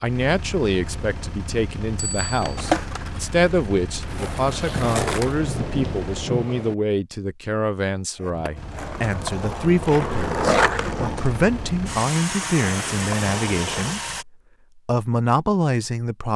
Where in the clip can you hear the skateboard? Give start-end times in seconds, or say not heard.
2.4-5.4, 8.2-14.0.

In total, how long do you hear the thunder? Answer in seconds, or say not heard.
2 s.